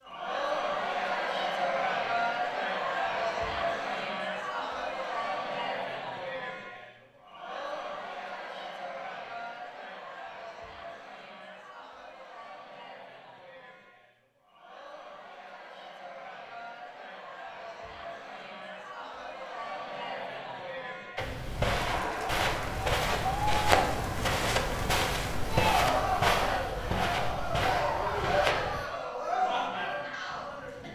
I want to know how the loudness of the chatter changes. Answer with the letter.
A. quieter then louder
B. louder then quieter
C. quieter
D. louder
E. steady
A.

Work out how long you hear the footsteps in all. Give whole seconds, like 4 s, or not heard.
8 s.